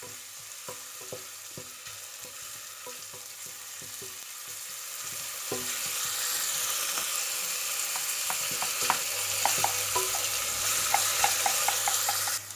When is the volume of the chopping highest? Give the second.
12 s.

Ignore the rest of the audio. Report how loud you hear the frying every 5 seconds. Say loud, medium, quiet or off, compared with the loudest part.
quiet, loud, loud.